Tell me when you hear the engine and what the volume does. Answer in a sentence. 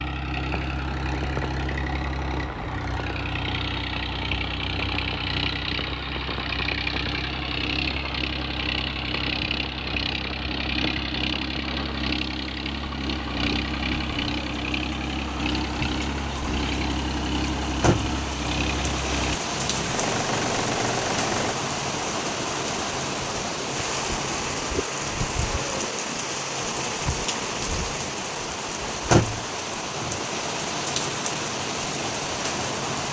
You can hear the engine from 0.0 to 21.6 s, at a steady volume.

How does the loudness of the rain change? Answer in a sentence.
The volume of the rain goes up.